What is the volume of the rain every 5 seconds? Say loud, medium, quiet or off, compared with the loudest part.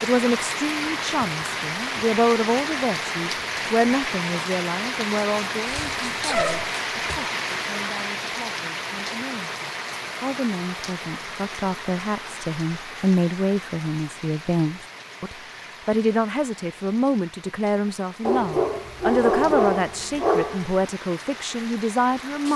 loud, loud, medium, quiet, medium.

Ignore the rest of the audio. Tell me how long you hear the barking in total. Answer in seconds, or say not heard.
4 s.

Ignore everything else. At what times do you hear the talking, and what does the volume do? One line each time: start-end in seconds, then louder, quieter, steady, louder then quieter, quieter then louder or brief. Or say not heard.
0.0-22.5 quieter then louder.